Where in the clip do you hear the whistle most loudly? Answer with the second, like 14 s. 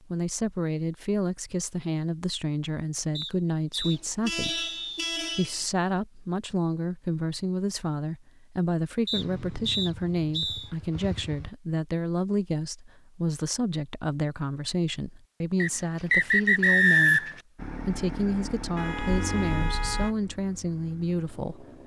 17 s.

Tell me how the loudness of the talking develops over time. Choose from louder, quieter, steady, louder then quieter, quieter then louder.
steady.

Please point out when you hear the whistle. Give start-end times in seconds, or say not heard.
3.1-5.2, 9.1-10.7, 15.6-17.4.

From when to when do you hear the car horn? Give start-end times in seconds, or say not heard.
3.8-5.7, 18.8-20.1.